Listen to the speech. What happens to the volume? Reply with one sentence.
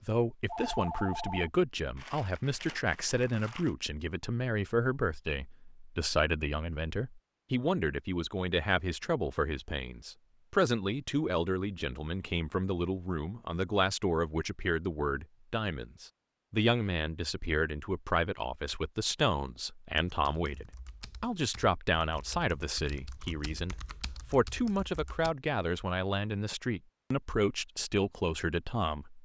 The volume of the speech stays about the same.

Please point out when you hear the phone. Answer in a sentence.
The phone can be heard from 0.5 to 1.5 s.